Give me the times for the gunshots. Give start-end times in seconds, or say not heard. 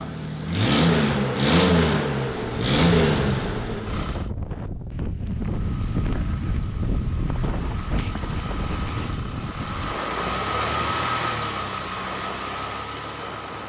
not heard.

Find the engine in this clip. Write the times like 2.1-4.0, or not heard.
0.0-4.2, 5.3-13.6.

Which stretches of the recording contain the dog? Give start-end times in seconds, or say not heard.
not heard.